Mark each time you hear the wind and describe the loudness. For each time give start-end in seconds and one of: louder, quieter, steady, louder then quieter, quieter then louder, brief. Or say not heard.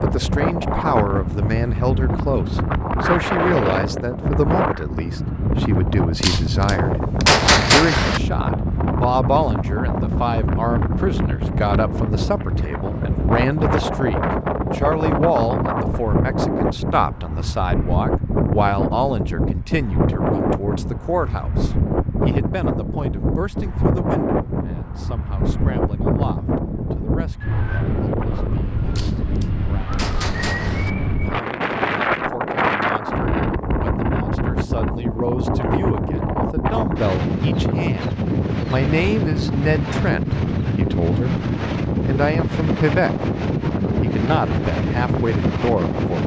0.0-46.2 steady.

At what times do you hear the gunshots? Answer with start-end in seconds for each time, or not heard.
6.2-8.2, 28.9-30.9.